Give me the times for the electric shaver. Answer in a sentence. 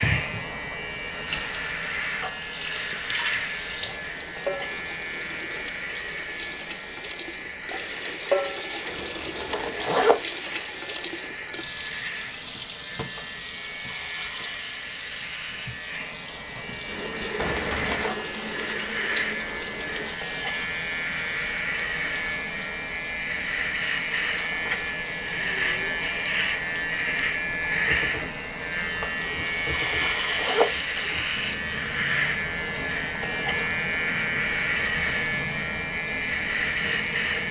The electric shaver can be heard from 0.0 to 37.4 s.